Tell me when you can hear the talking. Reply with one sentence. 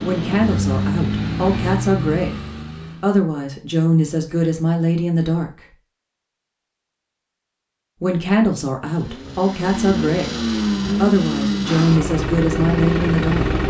The talking can be heard from 0.0 to 5.7 s and from 8.0 to 13.4 s.